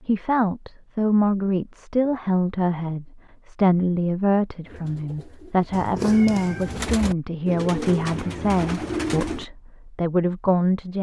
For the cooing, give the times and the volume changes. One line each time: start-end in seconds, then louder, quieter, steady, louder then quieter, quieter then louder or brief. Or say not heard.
4.6-9.4 louder.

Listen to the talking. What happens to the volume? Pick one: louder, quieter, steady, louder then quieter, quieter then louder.
steady.